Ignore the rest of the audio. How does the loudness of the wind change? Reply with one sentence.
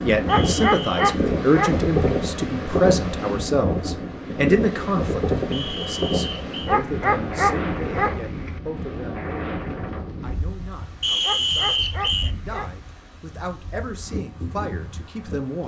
The loudness of the wind goes down.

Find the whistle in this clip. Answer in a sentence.
You can hear the whistle from 0.2 to 1.1 s, from 5.5 to 6.8 s and from 11.0 to 12.3 s.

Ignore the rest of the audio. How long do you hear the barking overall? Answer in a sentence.
You can hear the barking for 5 seconds altogether.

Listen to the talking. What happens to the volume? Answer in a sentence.
The volume of the talking goes down, then up.